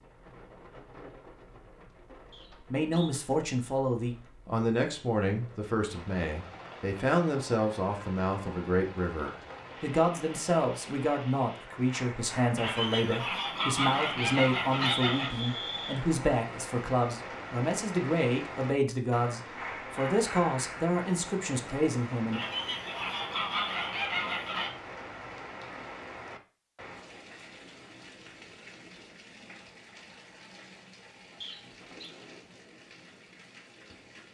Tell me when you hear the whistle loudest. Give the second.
15 s.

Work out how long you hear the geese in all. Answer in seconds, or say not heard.
5 s.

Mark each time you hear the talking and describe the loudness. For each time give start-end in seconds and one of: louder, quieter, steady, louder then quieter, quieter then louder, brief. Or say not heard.
2.5-22.4 steady.